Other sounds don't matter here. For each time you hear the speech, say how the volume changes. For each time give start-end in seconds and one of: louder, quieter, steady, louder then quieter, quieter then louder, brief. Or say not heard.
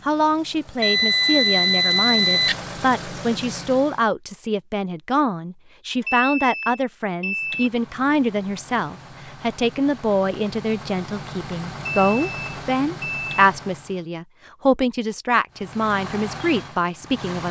0.1-17.4 steady.